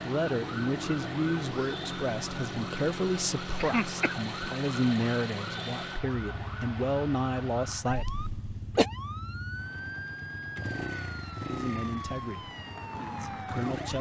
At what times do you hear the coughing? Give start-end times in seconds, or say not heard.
3.5-4.6, 7.9-8.8.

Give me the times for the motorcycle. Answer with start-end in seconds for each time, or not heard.
0.0-13.9.